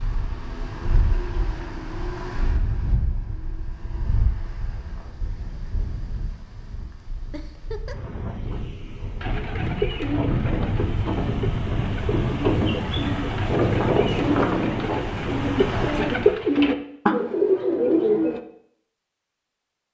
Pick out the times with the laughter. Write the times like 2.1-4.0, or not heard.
7.3-8.0.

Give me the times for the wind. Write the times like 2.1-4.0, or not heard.
0.0-16.4.